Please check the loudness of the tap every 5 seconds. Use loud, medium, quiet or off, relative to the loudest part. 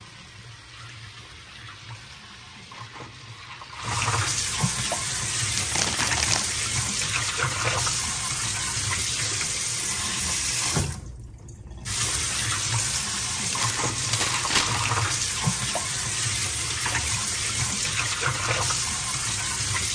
medium, loud, loud, loud.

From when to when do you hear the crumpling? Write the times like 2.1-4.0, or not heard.
5.5-6.5, 13.4-14.8.